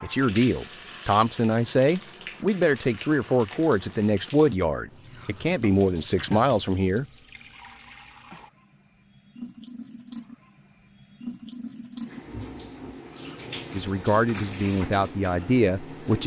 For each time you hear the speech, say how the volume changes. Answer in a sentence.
The speech can be heard from 0.0 to 7.0 s, at a steady volume; and briefly from 13.7 to 16.2 s.